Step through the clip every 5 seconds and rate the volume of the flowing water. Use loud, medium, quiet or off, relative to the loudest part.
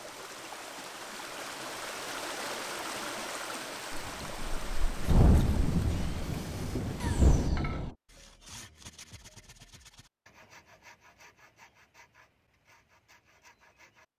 loud, medium, off.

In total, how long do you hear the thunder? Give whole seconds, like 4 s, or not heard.
4 s.